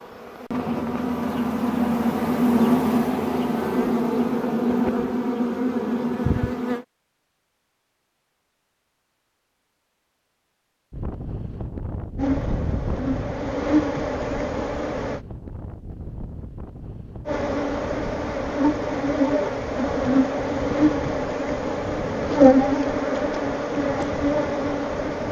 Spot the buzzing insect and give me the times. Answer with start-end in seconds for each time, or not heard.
0.0-6.8, 12.2-15.2, 17.2-25.2.